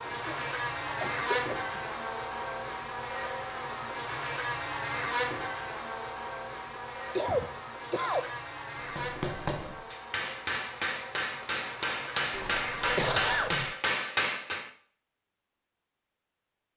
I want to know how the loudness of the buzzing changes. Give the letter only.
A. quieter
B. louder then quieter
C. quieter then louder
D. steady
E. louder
A.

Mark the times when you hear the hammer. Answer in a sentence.
You can hear the hammer from 8.8 to 14.7 s.